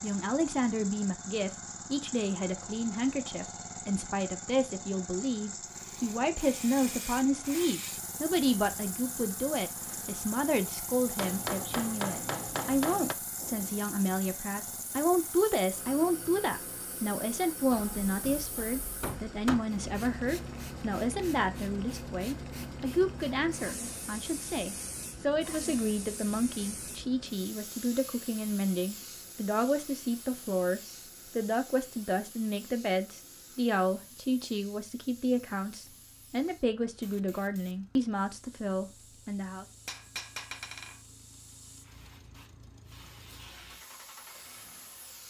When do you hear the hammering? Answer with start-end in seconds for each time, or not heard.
11.2-13.2, 17.7-19.7, 39.9-41.0.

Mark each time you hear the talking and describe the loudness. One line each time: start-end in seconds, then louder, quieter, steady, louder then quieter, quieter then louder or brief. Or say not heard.
0.0-39.6 steady.